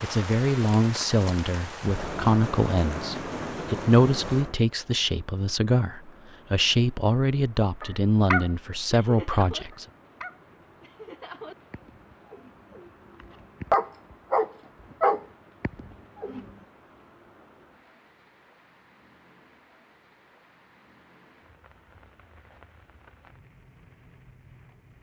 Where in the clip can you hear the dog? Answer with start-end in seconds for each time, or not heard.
7.8-16.5.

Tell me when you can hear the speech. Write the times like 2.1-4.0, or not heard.
0.0-9.8.